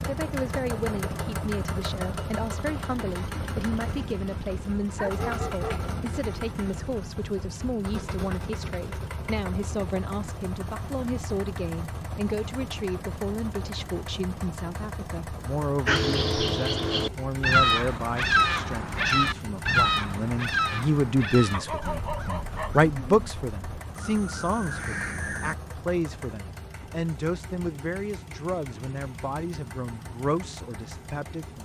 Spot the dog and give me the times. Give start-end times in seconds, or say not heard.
5.0-5.9, 21.5-23.3.